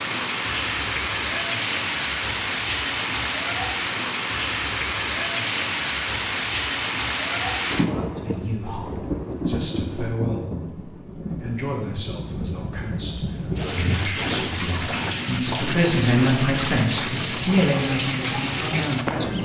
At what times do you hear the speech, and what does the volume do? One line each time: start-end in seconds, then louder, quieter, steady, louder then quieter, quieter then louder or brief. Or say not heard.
8.2-19.4 louder.